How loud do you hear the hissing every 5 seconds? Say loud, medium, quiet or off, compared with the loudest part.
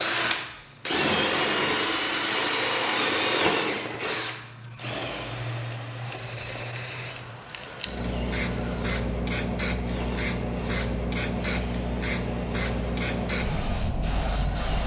quiet, loud, loud.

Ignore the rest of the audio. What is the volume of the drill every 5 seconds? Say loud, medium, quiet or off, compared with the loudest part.
loud, quiet, quiet.